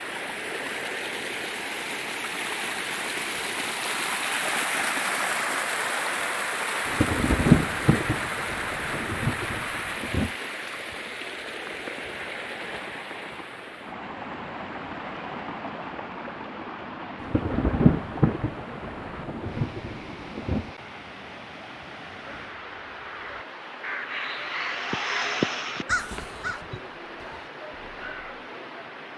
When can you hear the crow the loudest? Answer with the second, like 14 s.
25 s.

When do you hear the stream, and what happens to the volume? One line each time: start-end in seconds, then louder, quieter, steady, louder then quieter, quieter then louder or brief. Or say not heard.
0.0-29.1 quieter.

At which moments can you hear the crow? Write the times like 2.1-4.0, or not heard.
22.1-28.4.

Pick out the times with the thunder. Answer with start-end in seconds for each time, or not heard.
6.8-10.3, 17.2-20.7.